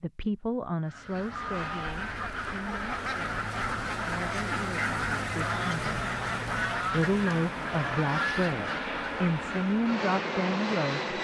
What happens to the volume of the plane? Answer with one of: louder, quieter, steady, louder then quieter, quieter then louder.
louder.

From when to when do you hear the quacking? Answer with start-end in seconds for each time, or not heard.
0.8-10.0.